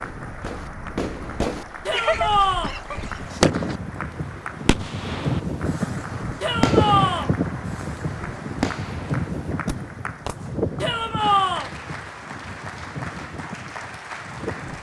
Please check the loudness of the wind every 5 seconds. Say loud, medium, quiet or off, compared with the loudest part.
medium, loud, medium.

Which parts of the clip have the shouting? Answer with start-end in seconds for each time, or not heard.
1.9-2.8, 6.4-7.3, 10.8-11.7.